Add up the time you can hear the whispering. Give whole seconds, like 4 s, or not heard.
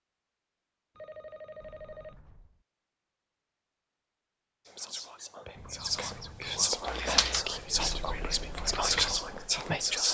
5 s.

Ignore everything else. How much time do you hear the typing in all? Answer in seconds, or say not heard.
3 s.